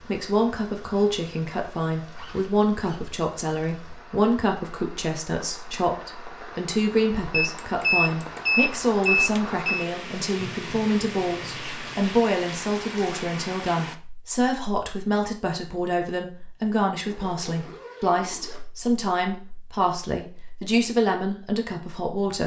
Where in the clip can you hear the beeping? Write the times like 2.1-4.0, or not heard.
7.3-9.9.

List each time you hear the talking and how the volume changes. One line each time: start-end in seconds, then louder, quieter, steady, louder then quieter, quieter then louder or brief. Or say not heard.
0.0-22.4 steady.